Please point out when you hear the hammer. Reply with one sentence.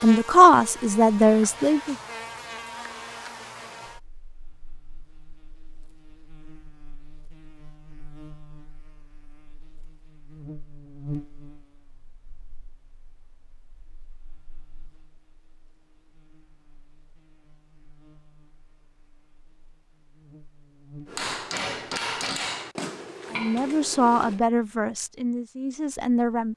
You can hear the hammer from 21.1 to 24.4 s.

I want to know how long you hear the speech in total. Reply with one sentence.
The speech can be heard for 5 seconds in total.